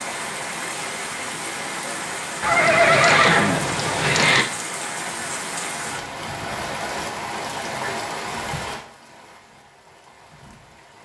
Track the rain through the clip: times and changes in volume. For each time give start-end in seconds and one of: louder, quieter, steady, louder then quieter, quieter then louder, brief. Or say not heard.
0.0-11.0 quieter.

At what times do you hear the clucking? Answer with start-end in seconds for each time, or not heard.
not heard.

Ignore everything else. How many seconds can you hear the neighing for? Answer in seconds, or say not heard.
2 s.